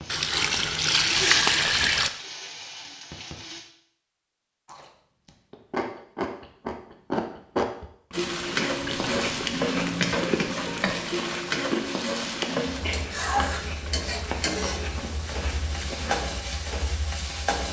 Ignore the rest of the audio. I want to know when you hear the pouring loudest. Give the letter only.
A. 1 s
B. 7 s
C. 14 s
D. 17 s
A.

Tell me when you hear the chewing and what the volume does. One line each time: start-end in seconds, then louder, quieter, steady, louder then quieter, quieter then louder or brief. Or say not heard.
4.7-16.3 quieter.